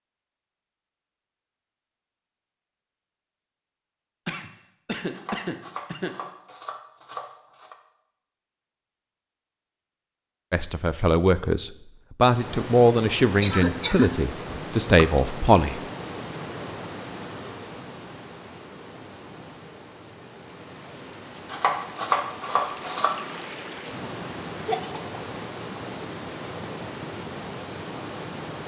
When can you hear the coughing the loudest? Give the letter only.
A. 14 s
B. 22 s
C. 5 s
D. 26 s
A.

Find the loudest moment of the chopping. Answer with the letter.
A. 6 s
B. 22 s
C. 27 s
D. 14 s
B.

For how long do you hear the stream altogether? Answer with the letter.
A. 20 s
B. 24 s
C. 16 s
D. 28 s
C.